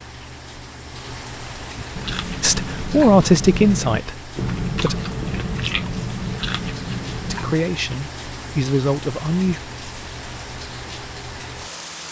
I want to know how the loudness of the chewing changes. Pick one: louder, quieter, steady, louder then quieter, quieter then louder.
steady.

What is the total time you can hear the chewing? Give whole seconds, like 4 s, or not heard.
6 s.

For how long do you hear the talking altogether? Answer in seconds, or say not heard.
5 s.